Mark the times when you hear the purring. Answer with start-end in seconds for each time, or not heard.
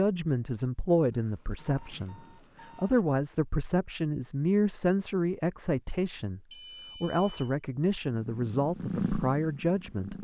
8.1-10.1.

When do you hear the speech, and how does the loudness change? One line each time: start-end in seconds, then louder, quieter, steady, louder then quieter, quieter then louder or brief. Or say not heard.
0.0-10.1 steady.